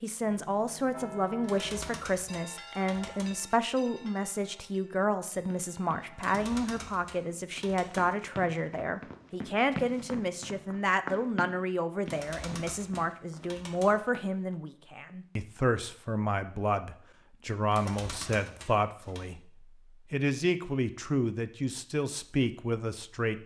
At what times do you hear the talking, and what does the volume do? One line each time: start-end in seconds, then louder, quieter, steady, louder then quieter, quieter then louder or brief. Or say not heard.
0.0-23.4 steady.